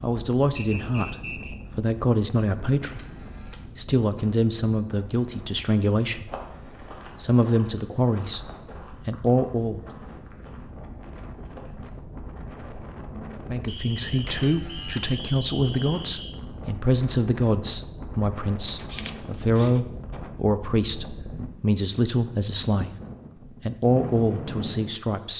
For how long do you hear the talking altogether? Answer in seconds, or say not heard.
22 s.